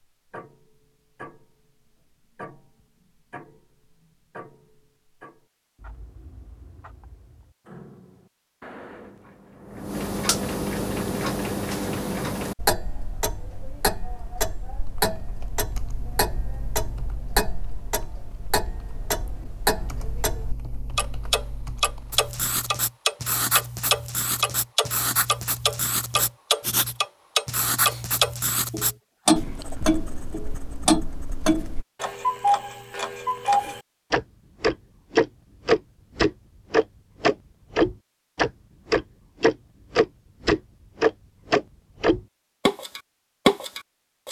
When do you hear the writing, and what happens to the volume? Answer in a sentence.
You can hear the writing from 22.1 to 31.9 s, getting quieter.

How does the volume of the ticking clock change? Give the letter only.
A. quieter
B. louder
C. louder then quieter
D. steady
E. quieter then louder
B.